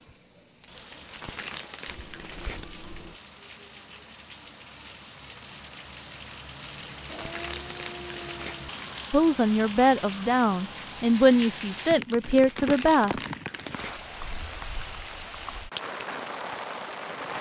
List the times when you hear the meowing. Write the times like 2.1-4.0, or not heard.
1.9-3.2.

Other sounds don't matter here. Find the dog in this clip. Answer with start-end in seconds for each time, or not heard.
not heard.